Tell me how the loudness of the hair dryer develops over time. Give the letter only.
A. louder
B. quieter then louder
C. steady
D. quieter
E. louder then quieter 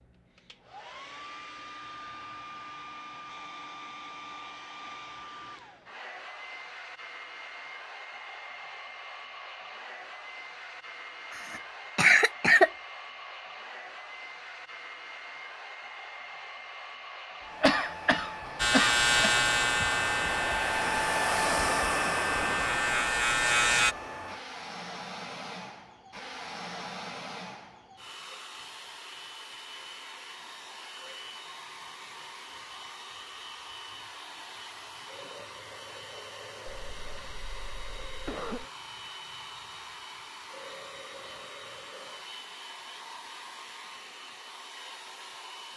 E.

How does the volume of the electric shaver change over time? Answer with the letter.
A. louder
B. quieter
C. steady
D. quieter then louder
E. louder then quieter
D.